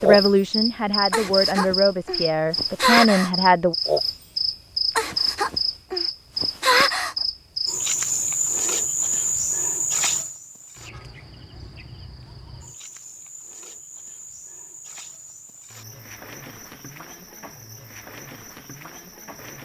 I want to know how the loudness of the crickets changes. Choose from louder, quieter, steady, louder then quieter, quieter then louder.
quieter.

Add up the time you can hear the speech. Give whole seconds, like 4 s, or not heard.
4 s.